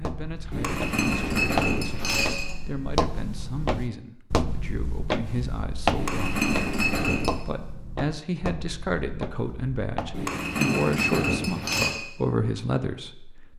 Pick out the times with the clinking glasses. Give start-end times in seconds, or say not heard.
0.5-2.5, 6.0-7.4, 10.1-11.9.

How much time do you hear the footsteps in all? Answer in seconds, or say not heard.
10 s.